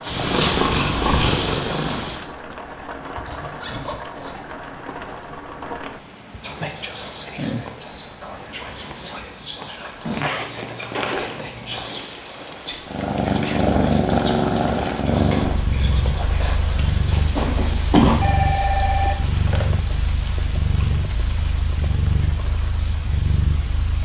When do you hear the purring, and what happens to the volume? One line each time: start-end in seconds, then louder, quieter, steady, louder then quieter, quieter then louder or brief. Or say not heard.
0.0-2.2 brief
12.8-24.0 quieter.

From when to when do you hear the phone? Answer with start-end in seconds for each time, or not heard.
18.2-19.7.